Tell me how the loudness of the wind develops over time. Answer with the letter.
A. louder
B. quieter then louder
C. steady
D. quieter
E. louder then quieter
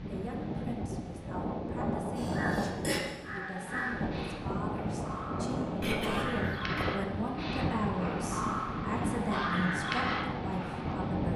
C.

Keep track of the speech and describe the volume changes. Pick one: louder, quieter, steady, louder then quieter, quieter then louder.
louder.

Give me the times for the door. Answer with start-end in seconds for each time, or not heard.
not heard.